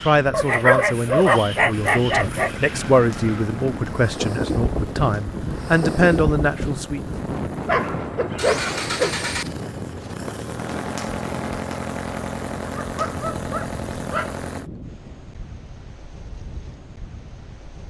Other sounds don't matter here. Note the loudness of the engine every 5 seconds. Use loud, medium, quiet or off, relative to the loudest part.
medium, loud, loud, off.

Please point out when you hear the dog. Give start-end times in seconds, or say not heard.
0.3-2.6, 7.7-9.2, 12.8-14.4.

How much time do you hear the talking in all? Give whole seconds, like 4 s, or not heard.
7 s.